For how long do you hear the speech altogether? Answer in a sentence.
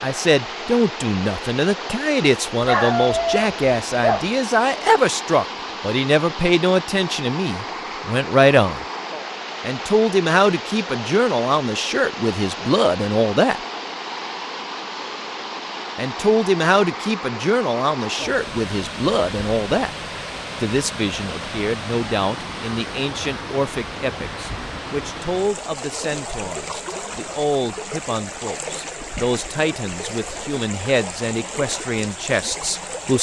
You can hear the speech for 29 seconds altogether.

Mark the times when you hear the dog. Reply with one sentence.
The dog can be heard from 2.6 to 4.3 s.